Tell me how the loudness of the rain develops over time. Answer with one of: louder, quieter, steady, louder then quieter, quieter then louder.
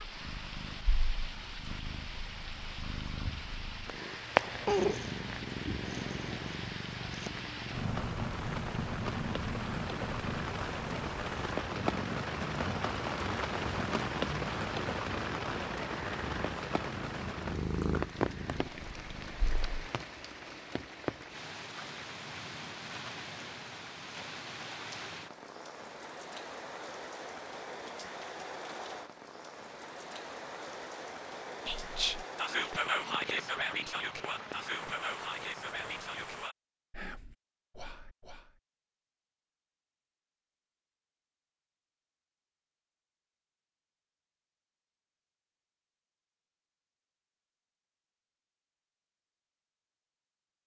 louder then quieter.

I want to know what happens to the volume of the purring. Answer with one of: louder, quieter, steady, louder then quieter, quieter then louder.
louder then quieter.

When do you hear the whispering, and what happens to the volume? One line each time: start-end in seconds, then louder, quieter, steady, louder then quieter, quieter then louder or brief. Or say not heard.
31.6-38.6 quieter.